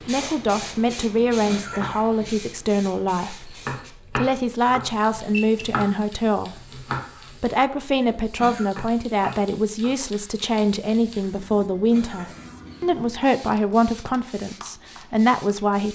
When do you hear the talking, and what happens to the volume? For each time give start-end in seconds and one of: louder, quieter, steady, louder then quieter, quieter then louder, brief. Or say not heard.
0.1-15.9 steady.